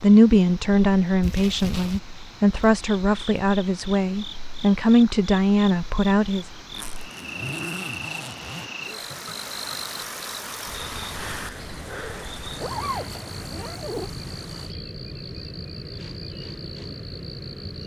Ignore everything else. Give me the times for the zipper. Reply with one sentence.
The zipper can be heard from 1.2 to 2.0 s, from 6.7 to 8.7 s and from 12.6 to 14.1 s.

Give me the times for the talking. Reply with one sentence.
You can hear the talking from 0.0 to 6.5 s.